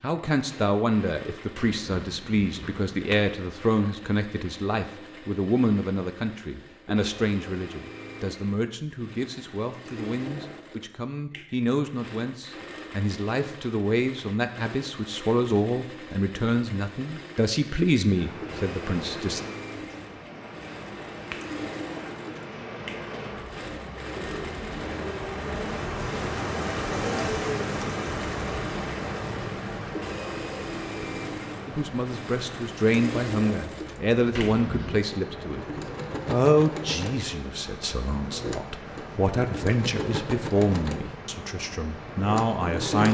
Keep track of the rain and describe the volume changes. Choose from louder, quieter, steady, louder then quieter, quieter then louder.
louder then quieter.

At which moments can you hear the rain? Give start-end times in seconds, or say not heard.
18.1-42.8.